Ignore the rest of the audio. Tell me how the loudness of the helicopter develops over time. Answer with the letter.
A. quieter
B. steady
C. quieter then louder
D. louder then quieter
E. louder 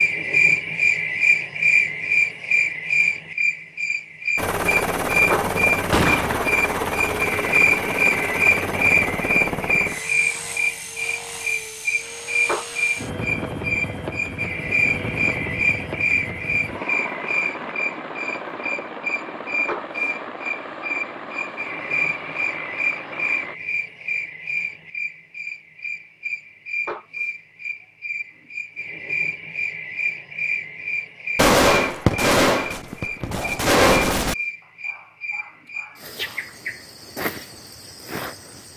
A.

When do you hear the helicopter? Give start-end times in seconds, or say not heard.
4.3-23.6.